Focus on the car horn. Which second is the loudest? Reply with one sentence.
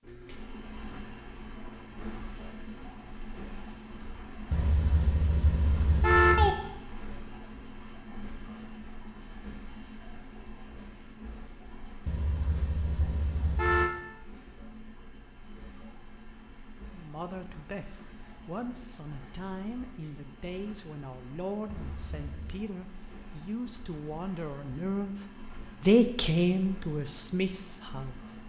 The loudest moment of the car horn is at 6 seconds.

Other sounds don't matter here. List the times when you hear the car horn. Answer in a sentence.
The car horn can be heard from 4.5 to 6.5 s, from 12.1 to 13.9 s and from 21.6 to 22.6 s.